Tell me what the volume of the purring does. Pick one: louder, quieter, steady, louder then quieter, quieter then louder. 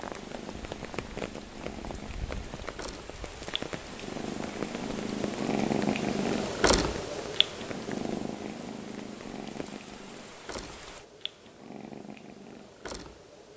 louder then quieter.